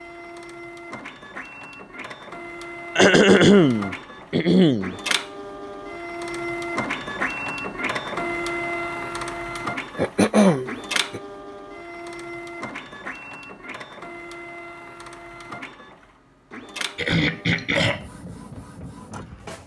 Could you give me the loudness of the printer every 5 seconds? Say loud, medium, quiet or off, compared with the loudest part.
medium, loud, medium, medium.